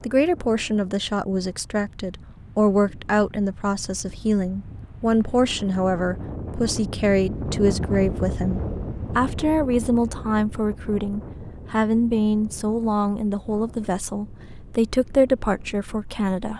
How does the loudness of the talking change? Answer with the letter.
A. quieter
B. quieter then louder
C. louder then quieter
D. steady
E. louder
D.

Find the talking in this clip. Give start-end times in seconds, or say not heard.
0.0-16.5.